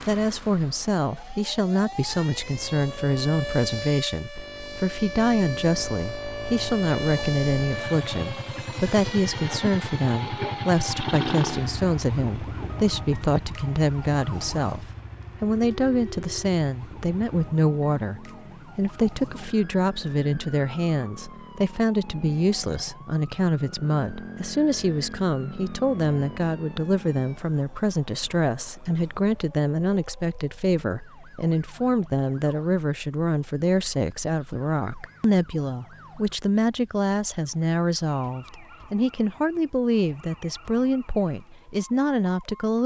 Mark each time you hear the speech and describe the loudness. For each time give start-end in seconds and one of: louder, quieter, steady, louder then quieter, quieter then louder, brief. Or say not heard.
0.1-42.8 steady.